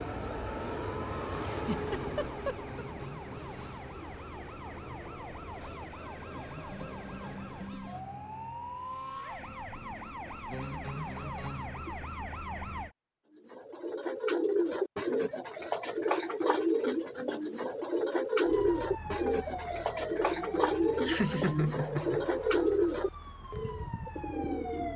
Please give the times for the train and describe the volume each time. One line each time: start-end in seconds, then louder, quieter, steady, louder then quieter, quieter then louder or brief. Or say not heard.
0.0-7.7 quieter.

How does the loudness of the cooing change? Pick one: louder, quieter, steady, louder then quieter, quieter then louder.
steady.